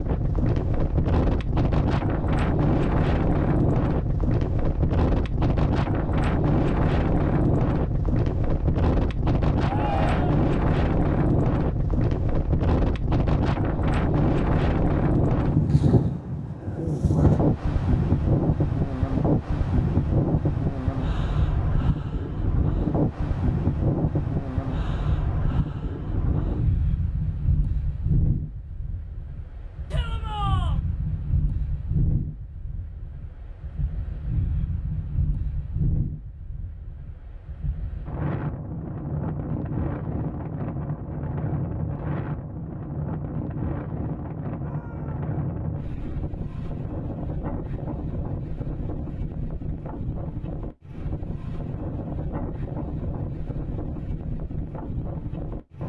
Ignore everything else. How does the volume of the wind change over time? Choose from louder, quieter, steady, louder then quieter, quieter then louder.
quieter.